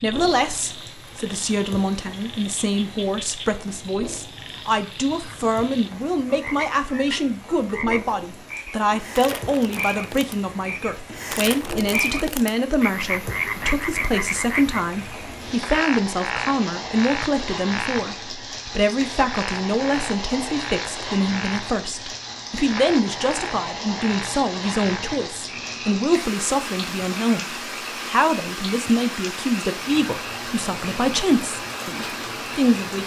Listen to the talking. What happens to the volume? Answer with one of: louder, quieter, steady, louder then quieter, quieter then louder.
steady.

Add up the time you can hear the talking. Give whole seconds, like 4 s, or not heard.
33 s.